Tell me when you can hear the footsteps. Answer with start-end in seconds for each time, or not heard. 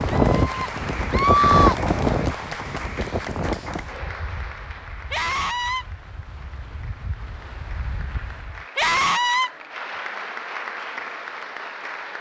not heard.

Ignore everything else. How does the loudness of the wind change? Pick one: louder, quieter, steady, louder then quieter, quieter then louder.
quieter then louder.